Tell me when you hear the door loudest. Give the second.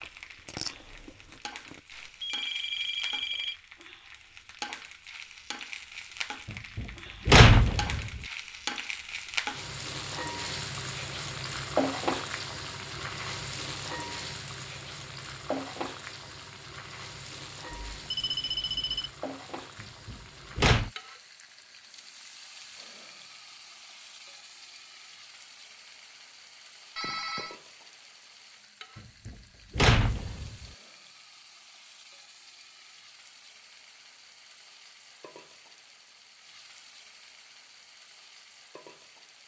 7 s.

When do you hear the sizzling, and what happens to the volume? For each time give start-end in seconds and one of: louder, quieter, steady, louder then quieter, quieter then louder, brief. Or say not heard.
0.0-39.4 louder then quieter.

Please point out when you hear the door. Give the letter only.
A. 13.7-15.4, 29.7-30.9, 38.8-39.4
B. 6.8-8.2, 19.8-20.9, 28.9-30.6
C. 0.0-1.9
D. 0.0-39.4
B.